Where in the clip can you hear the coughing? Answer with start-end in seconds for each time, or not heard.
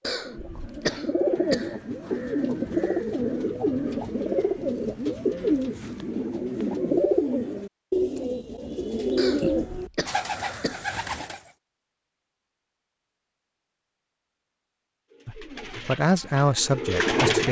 0.0-1.8, 9.2-10.8.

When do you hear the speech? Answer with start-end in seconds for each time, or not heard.
15.2-17.4.